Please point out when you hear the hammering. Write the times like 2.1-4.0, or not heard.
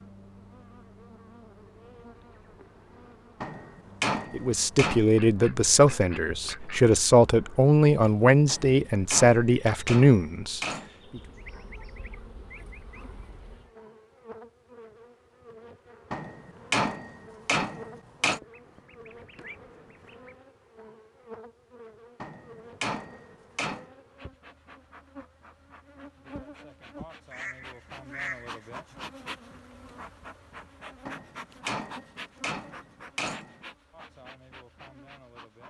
3.4-5.0, 8.4-10.9, 16.1-18.4, 22.2-23.9, 31.1-33.6.